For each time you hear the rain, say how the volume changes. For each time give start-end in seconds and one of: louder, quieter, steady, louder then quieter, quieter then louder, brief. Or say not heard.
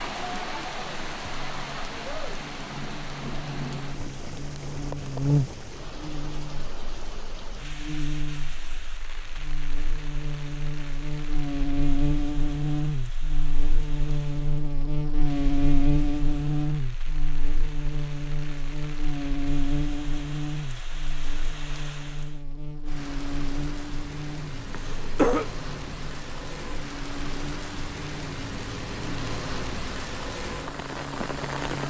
0.0-31.8 quieter then louder.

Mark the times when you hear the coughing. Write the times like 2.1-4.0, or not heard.
24.7-25.4.